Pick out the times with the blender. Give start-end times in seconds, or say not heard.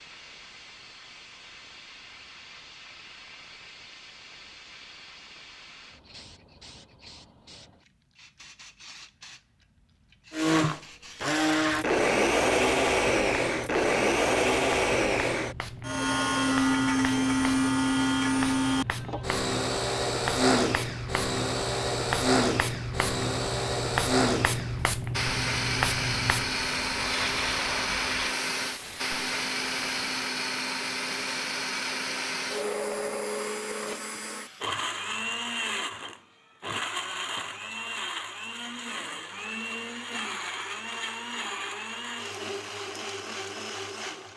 10.3-44.3.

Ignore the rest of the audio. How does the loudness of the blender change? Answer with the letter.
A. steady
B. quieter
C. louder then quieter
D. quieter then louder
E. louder
B.